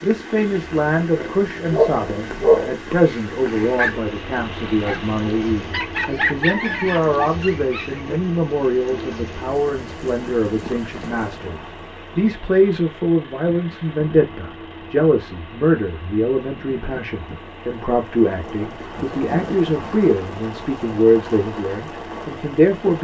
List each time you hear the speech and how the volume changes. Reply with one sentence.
You can hear the speech from 0.0 to 22.9 s, at a steady volume.